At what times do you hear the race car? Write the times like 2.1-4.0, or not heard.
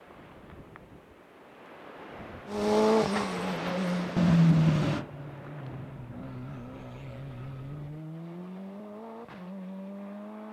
2.5-10.4.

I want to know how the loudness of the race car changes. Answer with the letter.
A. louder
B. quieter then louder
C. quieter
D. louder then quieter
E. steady
C.